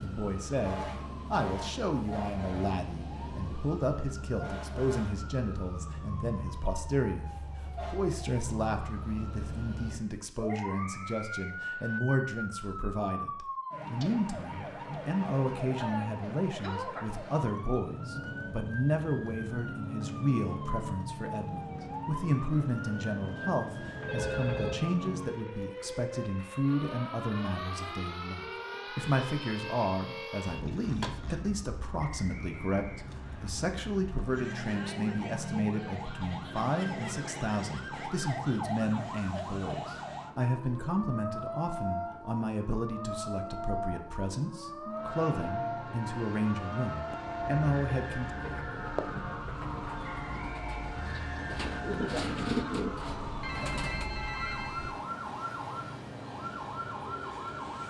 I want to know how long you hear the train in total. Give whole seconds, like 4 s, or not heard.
13 s.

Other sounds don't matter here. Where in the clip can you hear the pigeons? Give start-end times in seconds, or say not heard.
47.0-54.1.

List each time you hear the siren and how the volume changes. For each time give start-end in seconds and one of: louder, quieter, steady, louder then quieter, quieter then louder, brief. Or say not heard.
0.0-57.8 steady.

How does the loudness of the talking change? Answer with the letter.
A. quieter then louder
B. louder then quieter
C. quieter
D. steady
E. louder
D.